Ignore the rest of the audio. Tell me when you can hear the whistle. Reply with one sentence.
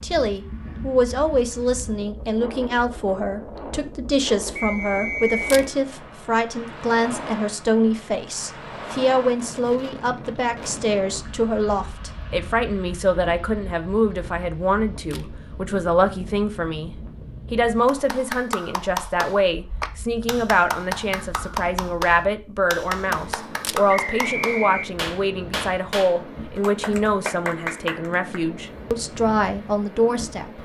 You can hear the whistle from 4.5 to 5.6 s and from 23.9 to 24.9 s.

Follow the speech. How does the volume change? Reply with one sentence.
The volume of the speech stays about the same.